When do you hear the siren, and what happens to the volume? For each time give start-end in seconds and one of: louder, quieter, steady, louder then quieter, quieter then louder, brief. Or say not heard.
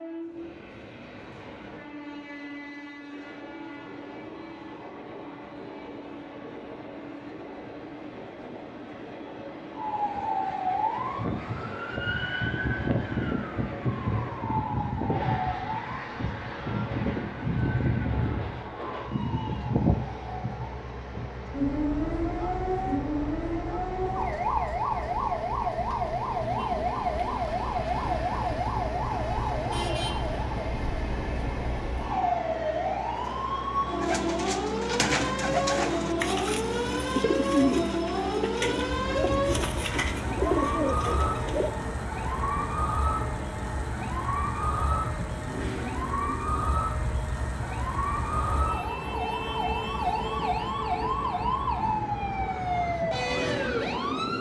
9.7-54.3 steady.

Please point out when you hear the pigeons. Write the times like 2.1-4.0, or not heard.
34.0-41.7.